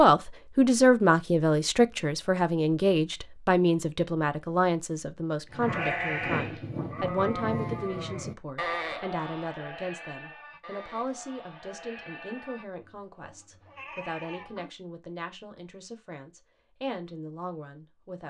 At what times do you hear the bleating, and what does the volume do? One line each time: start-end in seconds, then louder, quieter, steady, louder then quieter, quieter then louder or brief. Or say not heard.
5.5-14.7 quieter.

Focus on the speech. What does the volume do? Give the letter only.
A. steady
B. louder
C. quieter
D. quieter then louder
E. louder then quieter
C.